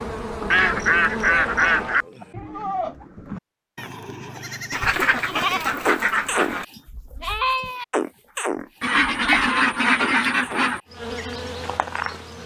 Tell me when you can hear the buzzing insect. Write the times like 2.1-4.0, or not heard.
0.0-2.0, 10.8-12.4.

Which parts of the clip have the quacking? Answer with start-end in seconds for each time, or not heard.
0.5-2.2, 4.7-6.7, 8.8-10.8.